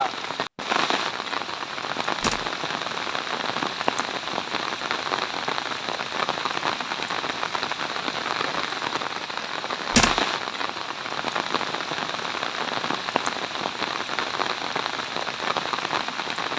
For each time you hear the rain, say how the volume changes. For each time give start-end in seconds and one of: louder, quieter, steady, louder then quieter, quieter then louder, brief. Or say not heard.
0.0-16.5 steady.